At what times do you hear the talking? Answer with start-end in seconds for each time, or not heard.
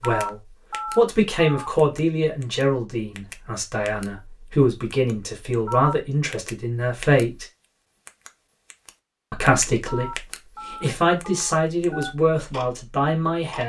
0.0-7.5, 9.3-13.6.